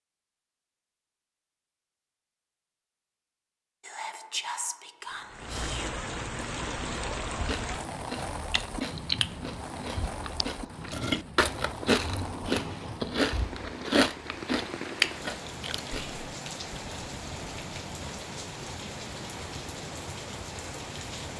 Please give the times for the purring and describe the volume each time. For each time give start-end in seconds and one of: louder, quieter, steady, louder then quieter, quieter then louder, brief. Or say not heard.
not heard.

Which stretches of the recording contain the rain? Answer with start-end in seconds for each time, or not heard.
5.0-21.3.